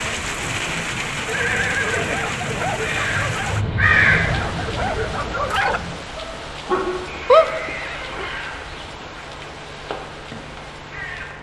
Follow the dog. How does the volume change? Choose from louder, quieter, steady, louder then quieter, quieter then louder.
louder.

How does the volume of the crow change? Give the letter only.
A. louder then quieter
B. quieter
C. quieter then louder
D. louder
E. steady
A.